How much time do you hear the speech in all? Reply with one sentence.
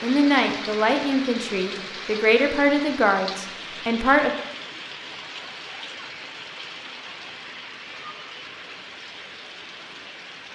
You can hear the speech for 4 seconds altogether.